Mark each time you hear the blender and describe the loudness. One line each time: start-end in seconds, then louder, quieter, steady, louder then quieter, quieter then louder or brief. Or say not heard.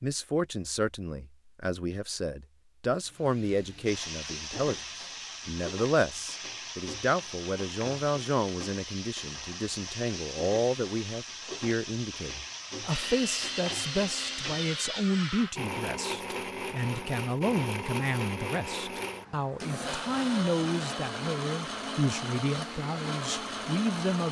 12.8-24.2 steady.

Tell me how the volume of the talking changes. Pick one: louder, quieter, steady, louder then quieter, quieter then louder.
steady.